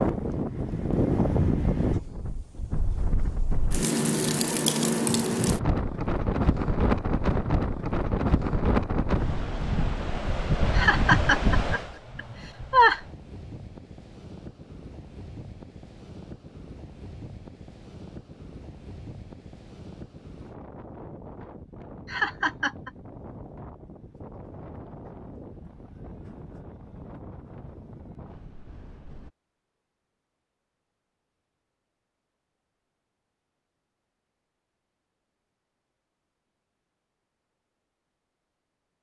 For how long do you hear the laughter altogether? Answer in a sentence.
The laughter can be heard for 3 seconds in total.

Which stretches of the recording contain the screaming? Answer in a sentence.
The screaming can't be heard in this clip.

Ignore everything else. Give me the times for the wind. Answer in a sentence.
The wind can be heard from 0.0 to 29.3 s.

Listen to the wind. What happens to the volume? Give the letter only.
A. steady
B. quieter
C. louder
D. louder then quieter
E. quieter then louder
B.